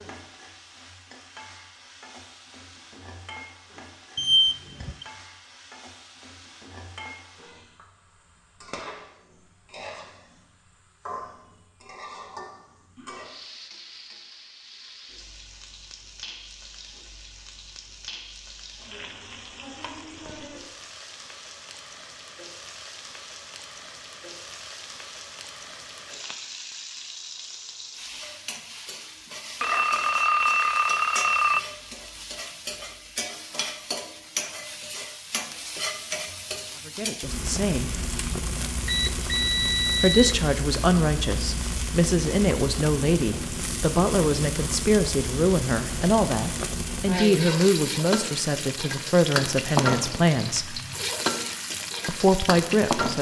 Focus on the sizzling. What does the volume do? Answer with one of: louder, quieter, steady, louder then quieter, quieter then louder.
louder.